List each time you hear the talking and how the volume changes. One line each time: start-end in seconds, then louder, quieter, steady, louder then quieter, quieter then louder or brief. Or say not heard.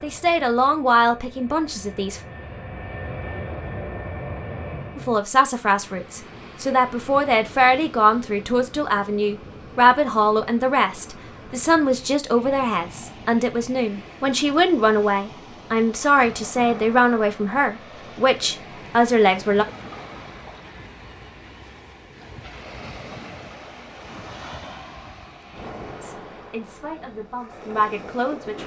0.0-2.2 brief
5.0-19.6 steady
26.0-28.6 brief.